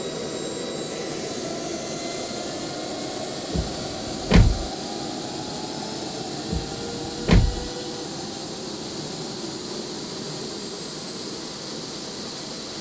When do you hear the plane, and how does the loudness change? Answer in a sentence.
You can hear the plane from 0.0 to 12.7 s, at a steady volume.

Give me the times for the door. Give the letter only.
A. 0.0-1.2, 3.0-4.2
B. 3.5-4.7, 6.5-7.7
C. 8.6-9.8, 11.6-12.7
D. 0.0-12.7
B.